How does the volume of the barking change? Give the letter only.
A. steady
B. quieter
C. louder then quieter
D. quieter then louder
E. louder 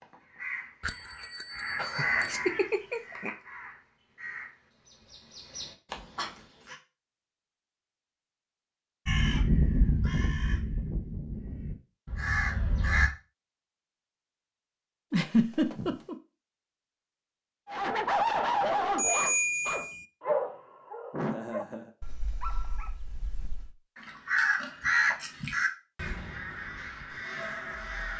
B.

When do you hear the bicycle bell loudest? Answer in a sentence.
The loudest moment of the bicycle bell is at 19 seconds.